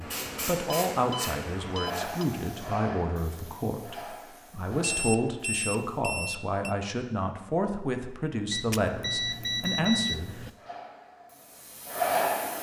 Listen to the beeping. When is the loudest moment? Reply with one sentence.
The loudest moment of the beeping is at 10 seconds.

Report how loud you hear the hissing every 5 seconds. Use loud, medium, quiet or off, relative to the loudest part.
medium, quiet, loud.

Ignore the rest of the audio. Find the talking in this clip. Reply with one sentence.
The talking can be heard from 0.0 to 10.3 s.